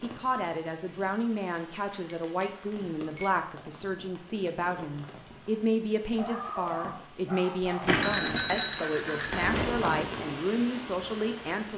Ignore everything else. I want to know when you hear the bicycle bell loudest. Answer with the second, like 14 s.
8 s.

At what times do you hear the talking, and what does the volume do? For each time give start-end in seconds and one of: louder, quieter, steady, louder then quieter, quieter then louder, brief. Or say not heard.
0.0-11.7 steady.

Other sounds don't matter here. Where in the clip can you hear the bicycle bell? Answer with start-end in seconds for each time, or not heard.
1.8-3.4, 7.8-9.9.